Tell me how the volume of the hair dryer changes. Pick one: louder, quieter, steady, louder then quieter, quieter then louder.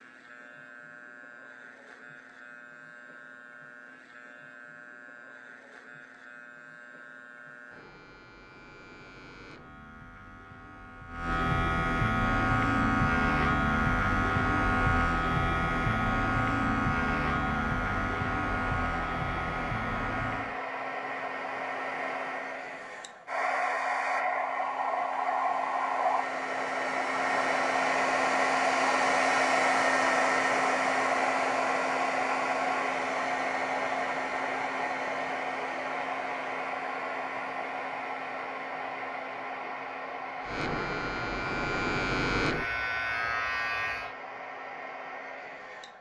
louder then quieter.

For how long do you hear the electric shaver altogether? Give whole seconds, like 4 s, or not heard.
24 s.